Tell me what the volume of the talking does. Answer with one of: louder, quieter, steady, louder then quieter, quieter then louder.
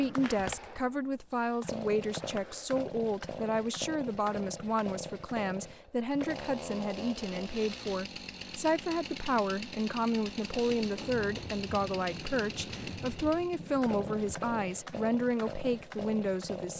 steady.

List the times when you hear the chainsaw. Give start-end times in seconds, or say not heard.
0.0-16.7.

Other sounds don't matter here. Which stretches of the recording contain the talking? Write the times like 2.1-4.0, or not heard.
0.0-16.7.